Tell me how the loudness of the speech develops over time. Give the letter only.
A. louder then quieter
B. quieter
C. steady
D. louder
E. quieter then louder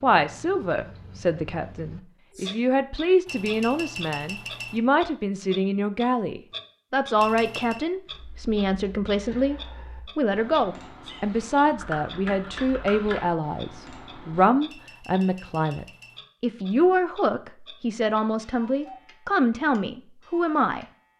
C.